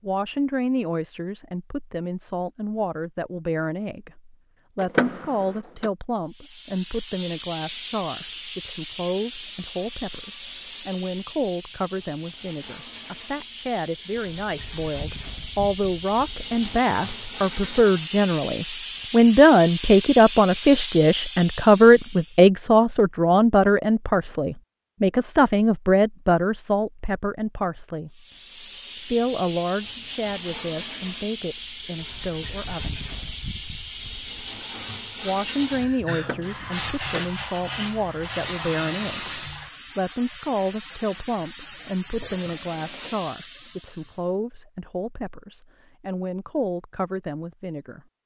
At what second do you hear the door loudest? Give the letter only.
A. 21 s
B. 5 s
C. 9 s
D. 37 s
B.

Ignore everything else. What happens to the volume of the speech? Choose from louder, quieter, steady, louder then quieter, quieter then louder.
louder then quieter.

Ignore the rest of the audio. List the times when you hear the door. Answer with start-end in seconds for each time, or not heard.
4.8-5.9, 36.1-37.2.